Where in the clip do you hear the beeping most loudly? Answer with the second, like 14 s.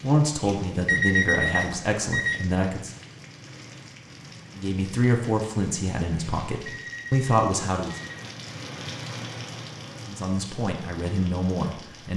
1 s.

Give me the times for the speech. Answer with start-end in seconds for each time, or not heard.
0.0-2.9, 4.5-8.0, 10.1-12.1.